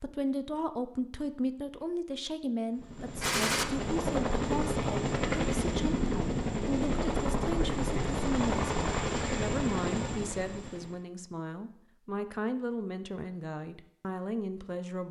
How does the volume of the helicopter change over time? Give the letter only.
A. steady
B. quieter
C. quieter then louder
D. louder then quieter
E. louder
A.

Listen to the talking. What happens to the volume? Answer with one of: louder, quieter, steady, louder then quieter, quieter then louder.
steady.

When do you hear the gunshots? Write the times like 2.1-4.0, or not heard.
3.2-3.6.